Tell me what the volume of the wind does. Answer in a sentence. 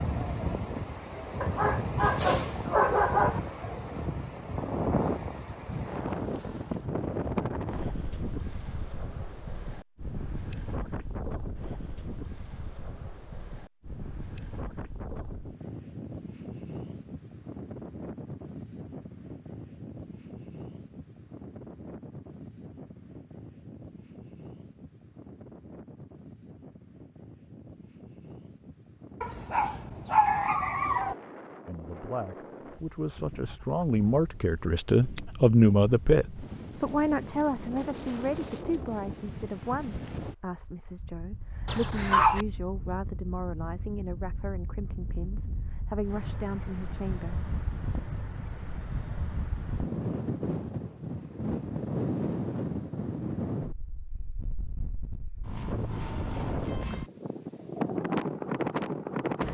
The volume of the wind goes down, then up.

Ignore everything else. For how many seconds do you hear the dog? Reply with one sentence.
You can hear the dog for 5 seconds altogether.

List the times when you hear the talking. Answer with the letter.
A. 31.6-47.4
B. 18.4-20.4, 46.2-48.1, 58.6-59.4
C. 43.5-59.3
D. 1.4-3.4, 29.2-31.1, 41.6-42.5
A.